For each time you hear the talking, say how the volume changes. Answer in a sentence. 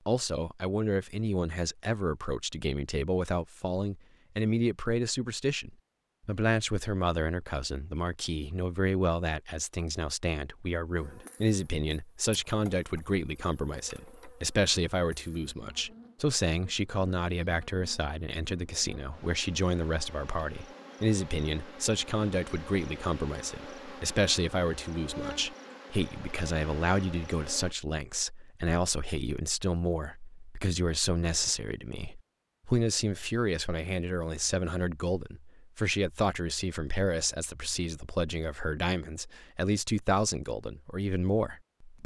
The talking can be heard from 0.1 to 42.0 s, at a steady volume.